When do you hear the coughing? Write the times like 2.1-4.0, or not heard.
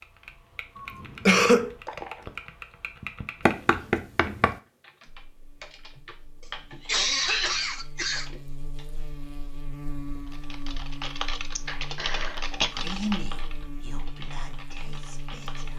0.8-1.8, 6.8-8.4, 11.6-12.7.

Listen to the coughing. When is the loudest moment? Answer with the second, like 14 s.
1 s.